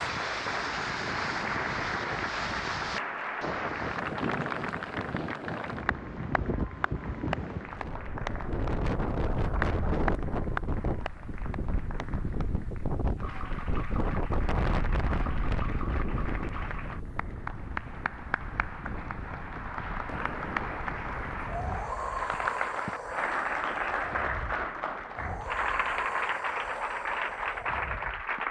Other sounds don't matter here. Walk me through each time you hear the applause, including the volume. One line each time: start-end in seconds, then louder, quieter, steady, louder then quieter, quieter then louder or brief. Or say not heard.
0.0-28.4 quieter then louder.